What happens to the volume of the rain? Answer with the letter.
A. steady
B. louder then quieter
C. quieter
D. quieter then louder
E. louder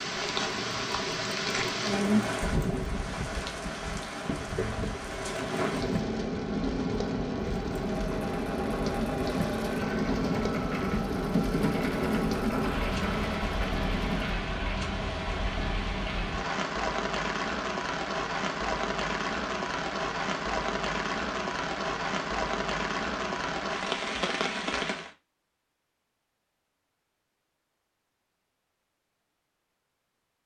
A.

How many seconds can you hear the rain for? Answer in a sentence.
The rain can be heard for 25 seconds in total.